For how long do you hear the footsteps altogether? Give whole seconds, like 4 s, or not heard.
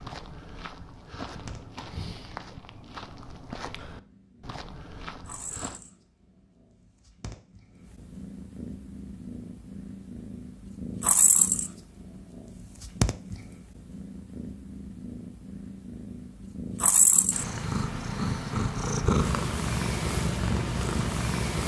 6 s.